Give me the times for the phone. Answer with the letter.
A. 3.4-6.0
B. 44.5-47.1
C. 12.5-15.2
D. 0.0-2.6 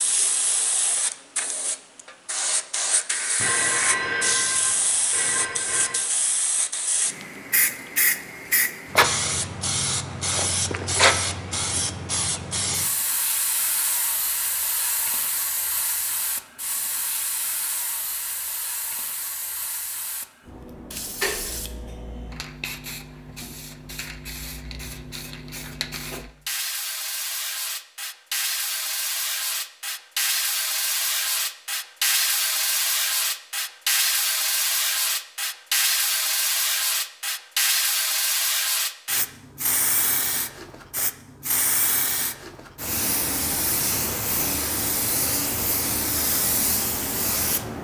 A.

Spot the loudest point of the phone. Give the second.
4 s.